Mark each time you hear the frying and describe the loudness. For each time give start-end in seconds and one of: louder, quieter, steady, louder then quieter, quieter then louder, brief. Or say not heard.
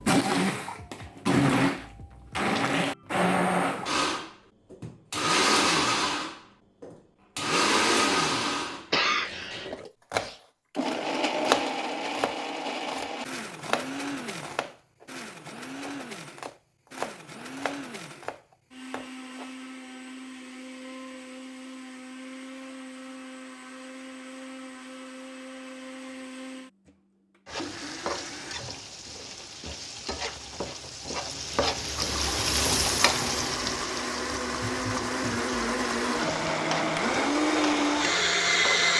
27.4-38.9 louder then quieter.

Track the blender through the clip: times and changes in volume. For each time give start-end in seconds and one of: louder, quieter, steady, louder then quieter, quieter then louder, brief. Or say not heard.
0.0-28.6 quieter
31.9-38.9 louder.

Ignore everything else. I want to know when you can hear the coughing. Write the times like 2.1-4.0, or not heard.
8.9-9.8.